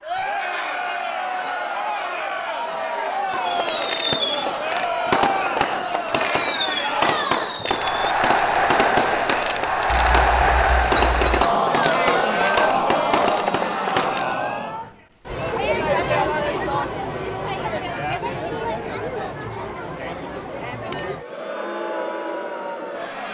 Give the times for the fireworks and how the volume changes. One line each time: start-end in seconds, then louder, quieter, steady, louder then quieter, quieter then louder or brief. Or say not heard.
3.3-14.3 steady.